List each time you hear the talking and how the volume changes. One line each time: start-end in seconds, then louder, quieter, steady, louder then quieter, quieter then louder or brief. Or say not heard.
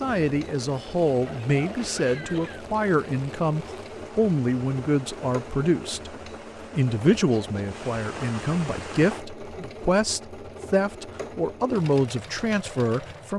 0.0-13.3 steady.